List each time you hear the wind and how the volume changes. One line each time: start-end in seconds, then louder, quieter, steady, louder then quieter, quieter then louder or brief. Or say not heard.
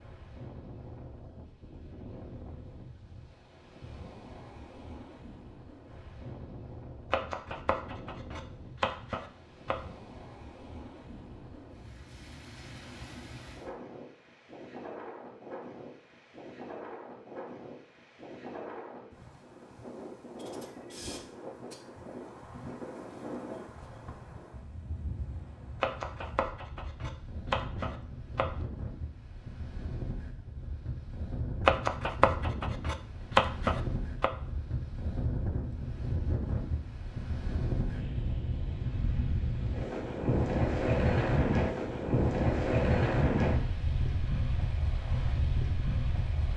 0.0-46.5 louder.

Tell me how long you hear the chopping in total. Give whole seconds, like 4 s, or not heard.
8 s.